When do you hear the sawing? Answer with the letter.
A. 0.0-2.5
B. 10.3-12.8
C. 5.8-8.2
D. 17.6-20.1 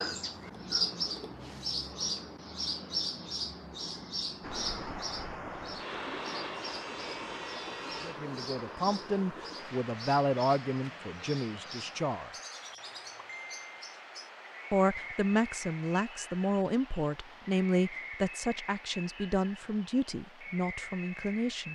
C.